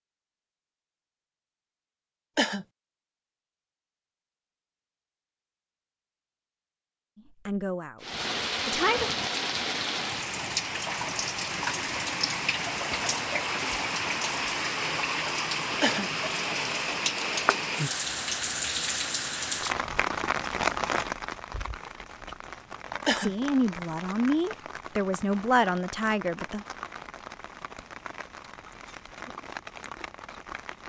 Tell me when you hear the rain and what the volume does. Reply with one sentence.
You can hear the rain from 8.0 to 30.8 s, getting quieter.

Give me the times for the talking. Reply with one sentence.
You can hear the talking from 7.5 to 9.1 s and from 23.1 to 26.6 s.